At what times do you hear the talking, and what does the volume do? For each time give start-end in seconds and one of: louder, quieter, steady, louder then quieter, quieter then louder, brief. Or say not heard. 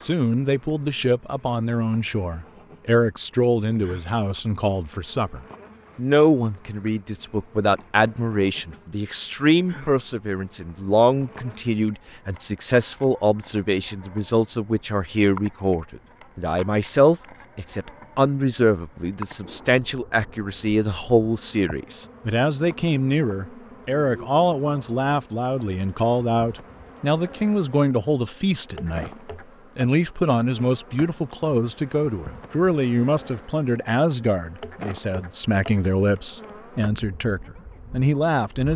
0.0-29.1 steady
29.8-38.7 steady.